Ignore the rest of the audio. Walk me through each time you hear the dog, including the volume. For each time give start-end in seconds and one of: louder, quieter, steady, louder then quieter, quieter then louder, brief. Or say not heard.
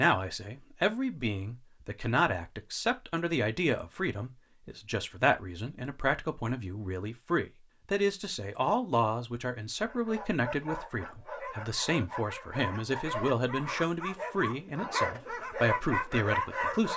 9.8-16.9 louder.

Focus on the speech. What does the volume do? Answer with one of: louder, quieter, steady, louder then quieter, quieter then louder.
steady.